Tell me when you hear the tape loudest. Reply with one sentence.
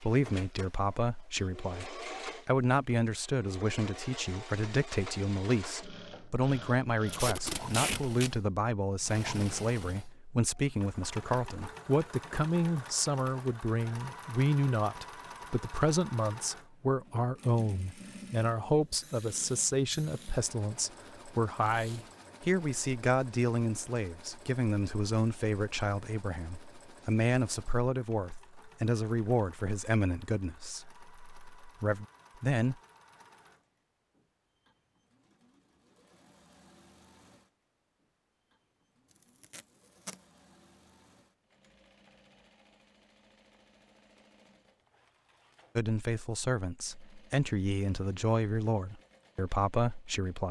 The volume of the tape peaks at 8 seconds.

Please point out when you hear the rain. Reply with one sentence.
The rain can't be heard in this clip.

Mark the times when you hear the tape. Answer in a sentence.
You can hear the tape from 7.0 to 8.3 s, from 21.6 to 22.1 s and from 39.4 to 40.1 s.